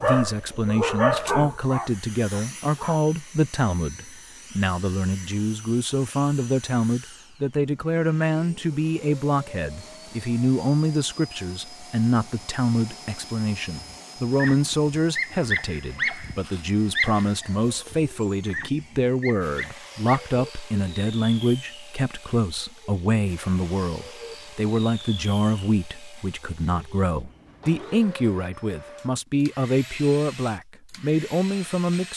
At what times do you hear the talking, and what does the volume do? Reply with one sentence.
The talking can be heard from 0.0 to 32.1 s, at a steady volume.